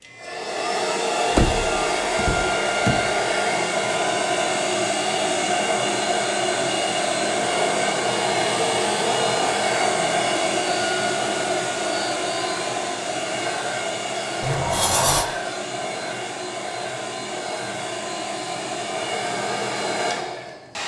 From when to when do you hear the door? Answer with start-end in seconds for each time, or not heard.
1.3-3.1, 14.4-15.3.